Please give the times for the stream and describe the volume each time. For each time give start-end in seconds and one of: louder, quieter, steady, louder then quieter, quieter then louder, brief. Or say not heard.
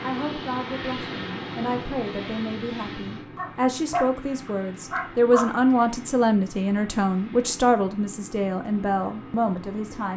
not heard.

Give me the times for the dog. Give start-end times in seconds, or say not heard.
3.4-5.5.